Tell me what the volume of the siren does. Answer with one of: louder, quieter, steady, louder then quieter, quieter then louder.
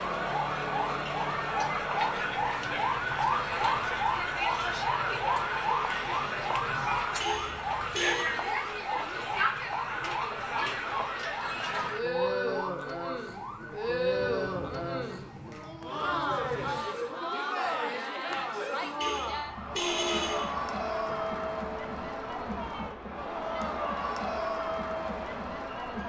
quieter.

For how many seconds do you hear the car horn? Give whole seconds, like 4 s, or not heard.
3 s.